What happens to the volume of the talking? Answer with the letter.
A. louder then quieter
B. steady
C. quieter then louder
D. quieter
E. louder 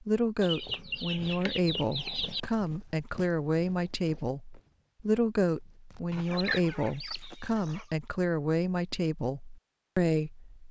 B.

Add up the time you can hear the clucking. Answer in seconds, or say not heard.
4 s.